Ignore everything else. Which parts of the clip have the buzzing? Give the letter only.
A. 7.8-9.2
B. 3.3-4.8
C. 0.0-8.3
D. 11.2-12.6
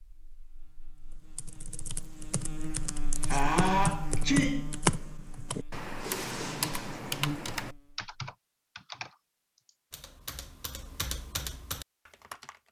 C.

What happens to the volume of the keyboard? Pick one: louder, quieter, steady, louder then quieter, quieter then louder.
louder then quieter.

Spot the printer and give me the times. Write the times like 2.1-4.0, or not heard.
not heard.